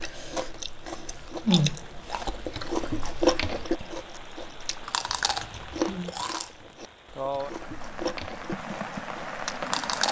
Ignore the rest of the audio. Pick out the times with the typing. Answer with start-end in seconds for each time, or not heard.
not heard.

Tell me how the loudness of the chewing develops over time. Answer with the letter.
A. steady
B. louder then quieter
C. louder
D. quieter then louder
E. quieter
E.